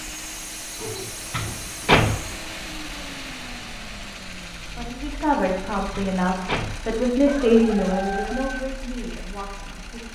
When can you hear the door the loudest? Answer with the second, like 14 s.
2 s.